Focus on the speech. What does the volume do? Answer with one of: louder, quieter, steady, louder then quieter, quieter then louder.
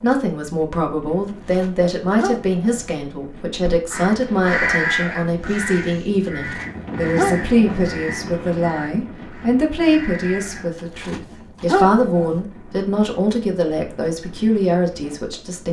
steady.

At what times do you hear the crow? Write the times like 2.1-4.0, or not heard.
3.6-10.8.